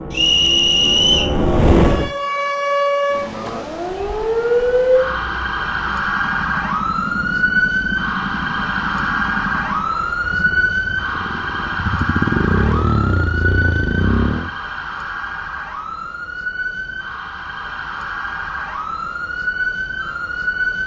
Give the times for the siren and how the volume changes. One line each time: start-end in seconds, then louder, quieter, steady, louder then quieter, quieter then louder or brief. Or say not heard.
1.8-20.8 quieter.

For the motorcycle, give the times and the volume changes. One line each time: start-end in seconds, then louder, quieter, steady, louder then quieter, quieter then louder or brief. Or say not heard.
0.0-2.1 brief
4.8-14.5 louder.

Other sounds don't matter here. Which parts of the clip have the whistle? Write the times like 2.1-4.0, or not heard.
0.1-1.4.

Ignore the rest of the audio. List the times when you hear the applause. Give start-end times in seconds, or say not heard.
not heard.